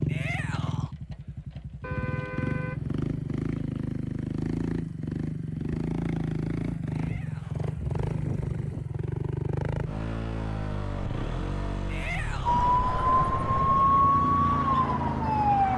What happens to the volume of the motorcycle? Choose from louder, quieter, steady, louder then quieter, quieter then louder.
steady.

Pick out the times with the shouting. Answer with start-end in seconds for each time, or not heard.
0.1-0.9, 6.9-7.7, 11.8-12.7.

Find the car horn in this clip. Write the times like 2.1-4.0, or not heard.
1.8-3.5.